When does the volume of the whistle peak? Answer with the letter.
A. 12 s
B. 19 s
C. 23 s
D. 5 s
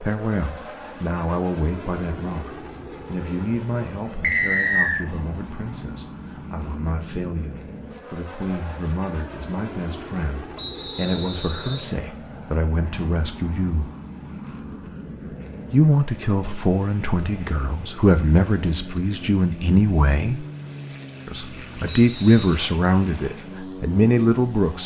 D.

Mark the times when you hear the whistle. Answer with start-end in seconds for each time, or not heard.
4.2-5.0, 10.6-11.9, 21.9-22.6.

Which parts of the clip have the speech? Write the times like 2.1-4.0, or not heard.
0.0-13.9, 15.7-20.4, 21.2-24.8.